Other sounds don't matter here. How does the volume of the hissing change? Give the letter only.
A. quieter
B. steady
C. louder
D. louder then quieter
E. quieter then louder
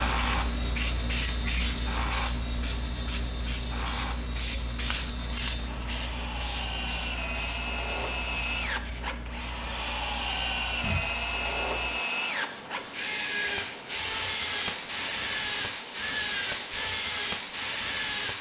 A.